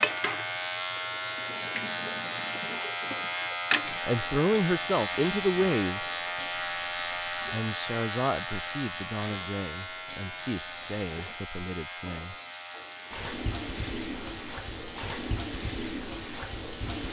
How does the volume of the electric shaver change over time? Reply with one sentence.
The volume of the electric shaver goes down.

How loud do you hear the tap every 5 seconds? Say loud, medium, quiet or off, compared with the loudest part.
loud, medium, medium, loud.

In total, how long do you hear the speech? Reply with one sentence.
You can hear the speech for 7 seconds altogether.